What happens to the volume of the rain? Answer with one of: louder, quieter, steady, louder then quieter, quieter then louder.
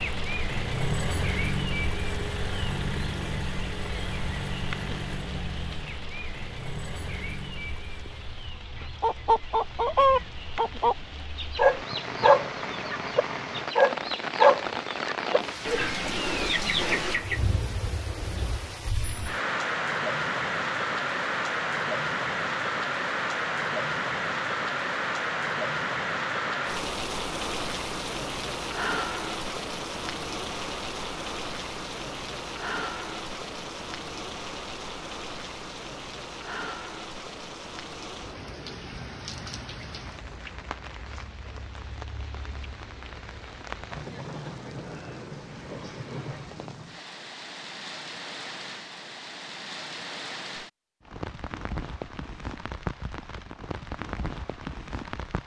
louder then quieter.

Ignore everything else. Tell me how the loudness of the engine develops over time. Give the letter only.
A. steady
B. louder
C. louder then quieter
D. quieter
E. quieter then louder
D.